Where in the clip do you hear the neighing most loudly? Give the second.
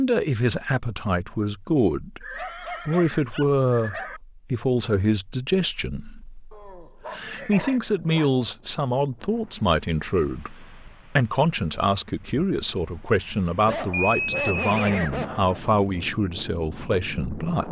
14 s.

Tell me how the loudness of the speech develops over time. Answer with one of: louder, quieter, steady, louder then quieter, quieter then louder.
steady.